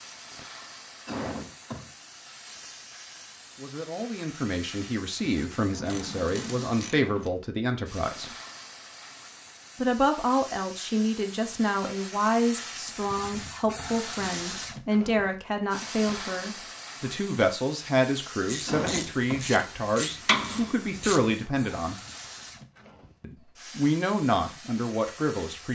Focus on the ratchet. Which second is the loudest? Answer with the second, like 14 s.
20 s.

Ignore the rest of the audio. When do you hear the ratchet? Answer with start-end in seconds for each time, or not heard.
5.7-7.3, 18.4-21.2.